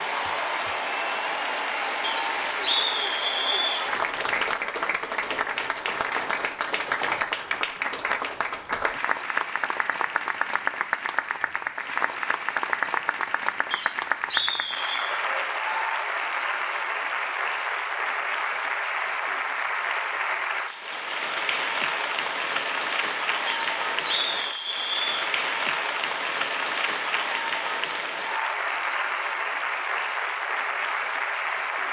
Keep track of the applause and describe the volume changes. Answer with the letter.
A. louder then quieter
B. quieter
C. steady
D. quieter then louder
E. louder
C.